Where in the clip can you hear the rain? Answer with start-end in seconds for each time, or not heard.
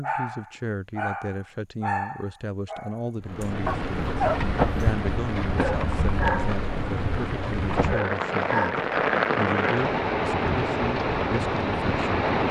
3.2-12.4.